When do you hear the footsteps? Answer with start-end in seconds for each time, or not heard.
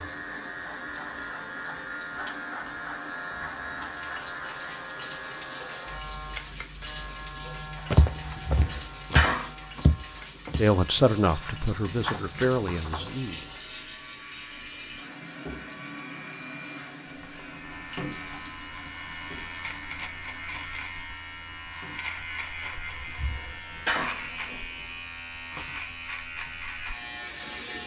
7.9-13.3.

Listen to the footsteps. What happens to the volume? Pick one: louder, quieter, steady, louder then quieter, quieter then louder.
quieter then louder.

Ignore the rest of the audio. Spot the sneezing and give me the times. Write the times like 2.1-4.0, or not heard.
8.2-9.8, 22.7-24.6.